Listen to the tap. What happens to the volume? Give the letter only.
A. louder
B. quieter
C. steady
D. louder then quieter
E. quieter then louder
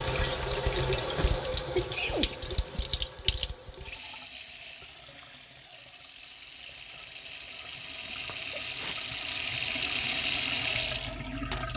E.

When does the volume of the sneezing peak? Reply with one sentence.
The loudest moment of the sneezing is at 2 seconds.